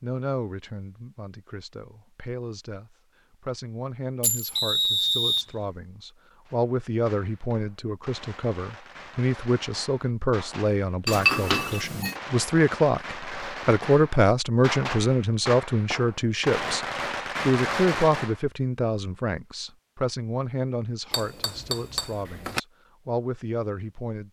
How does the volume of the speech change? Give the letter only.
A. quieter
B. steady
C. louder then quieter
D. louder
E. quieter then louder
C.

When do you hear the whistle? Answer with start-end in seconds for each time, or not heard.
4.5-5.5.